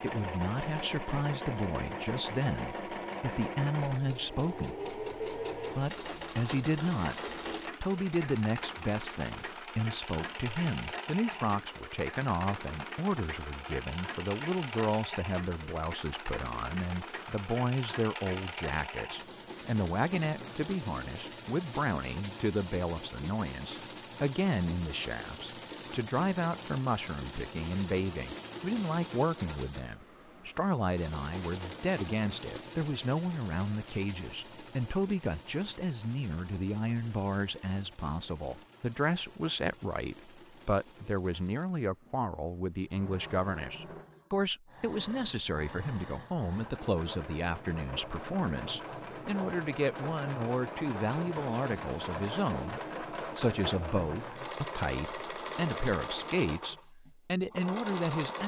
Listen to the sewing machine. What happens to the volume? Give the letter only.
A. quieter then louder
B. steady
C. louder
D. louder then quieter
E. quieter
A.